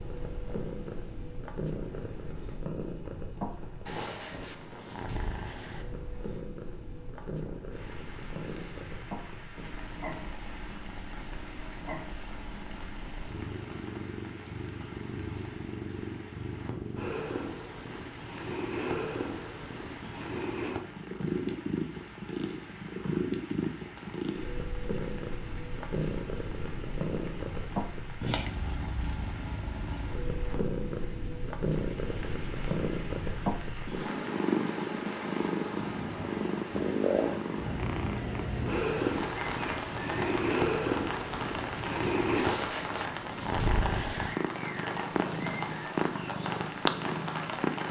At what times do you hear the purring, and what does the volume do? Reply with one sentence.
The purring can be heard from 0.0 to 47.8 s, getting louder.